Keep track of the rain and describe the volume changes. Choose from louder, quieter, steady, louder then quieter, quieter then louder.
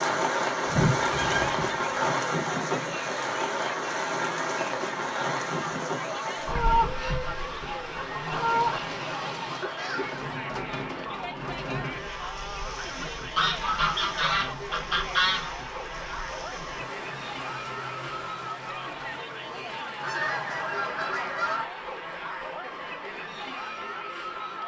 quieter.